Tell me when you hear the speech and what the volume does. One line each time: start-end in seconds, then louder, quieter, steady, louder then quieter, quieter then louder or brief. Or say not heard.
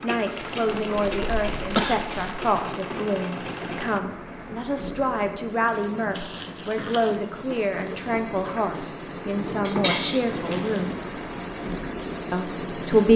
0.0-11.1 steady
12.3-13.1 brief.